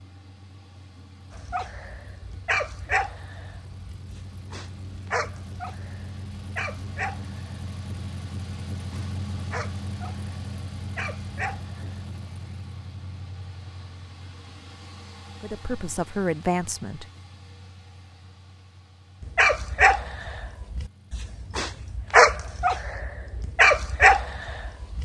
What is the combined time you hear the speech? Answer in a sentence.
You can hear the speech for 2 seconds altogether.